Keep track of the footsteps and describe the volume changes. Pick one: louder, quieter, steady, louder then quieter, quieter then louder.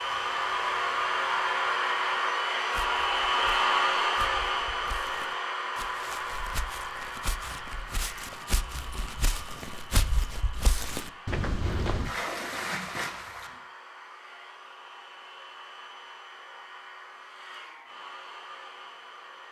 louder.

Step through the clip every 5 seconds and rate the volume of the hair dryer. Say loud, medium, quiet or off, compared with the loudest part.
loud, medium, quiet, quiet.